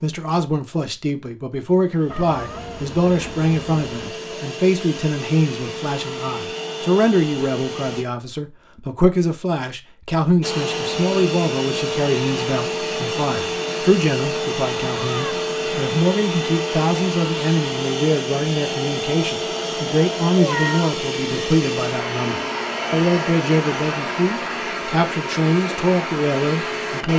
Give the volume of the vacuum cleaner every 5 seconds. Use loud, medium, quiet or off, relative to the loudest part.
medium, medium, loud, loud, loud, loud.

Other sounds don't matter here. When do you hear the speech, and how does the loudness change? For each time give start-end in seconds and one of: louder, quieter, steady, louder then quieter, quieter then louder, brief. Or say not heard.
0.0-27.1 steady.